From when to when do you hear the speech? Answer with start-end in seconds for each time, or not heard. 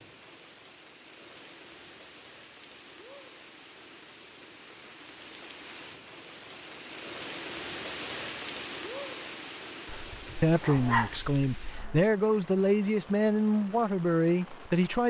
10.4-15.0.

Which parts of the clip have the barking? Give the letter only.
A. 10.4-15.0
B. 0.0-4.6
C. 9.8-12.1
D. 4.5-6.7
C.